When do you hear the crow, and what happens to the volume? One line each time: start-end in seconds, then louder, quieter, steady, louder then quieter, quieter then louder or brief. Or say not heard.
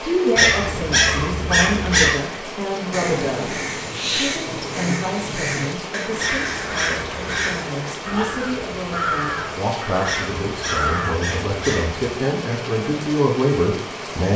2.9-11.2 steady.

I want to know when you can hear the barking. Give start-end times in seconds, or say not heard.
0.3-2.1, 6.2-7.6, 10.1-12.0.